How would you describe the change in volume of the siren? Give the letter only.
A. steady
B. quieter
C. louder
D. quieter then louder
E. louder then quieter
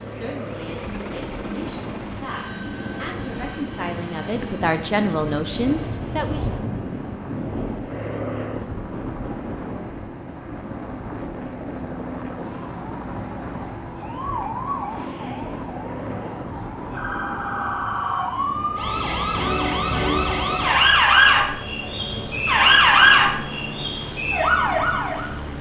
C.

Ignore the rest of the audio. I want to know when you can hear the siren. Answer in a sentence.
You can hear the siren from 12.4 to 25.3 s.